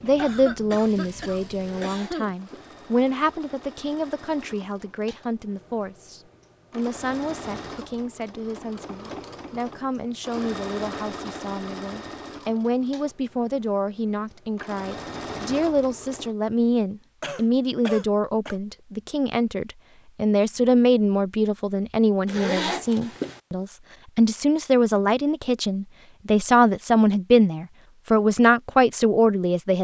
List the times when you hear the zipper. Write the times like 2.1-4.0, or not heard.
1.6-2.7, 22.2-23.4.